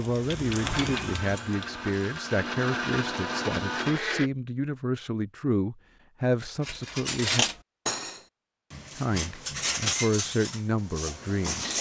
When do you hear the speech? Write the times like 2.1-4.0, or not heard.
0.0-7.5, 8.9-11.7.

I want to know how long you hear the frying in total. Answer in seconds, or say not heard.
2 s.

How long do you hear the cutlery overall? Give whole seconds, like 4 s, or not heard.
5 s.